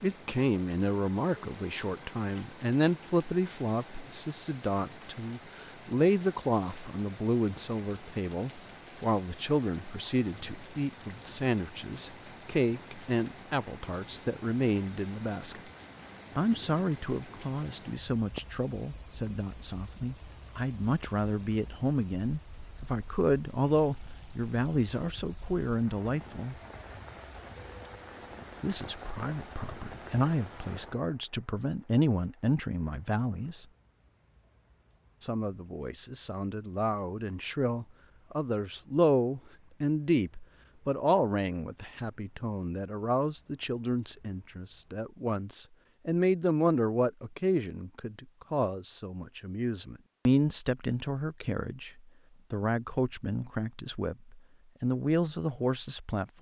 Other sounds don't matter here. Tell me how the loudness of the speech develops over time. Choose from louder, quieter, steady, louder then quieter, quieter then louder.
steady.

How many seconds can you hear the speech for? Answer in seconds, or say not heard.
52 s.